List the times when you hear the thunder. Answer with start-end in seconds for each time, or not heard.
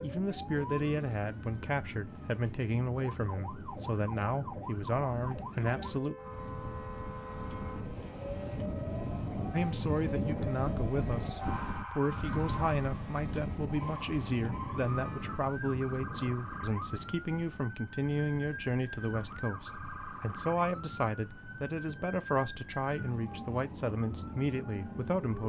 not heard.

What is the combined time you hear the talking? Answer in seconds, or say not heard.
22 s.